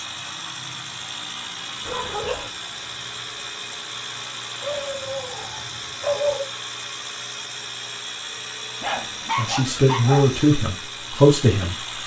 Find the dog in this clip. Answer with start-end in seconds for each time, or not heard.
1.9-2.5, 4.6-6.5, 8.8-10.3.